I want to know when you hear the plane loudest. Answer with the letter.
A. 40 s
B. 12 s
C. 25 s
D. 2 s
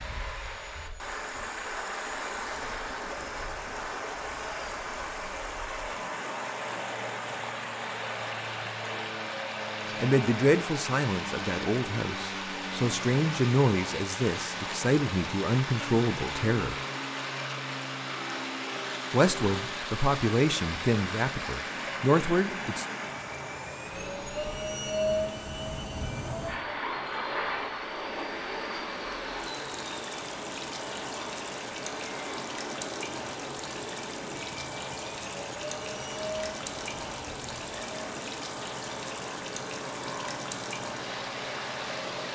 C.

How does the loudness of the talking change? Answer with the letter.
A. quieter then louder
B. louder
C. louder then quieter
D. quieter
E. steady
E.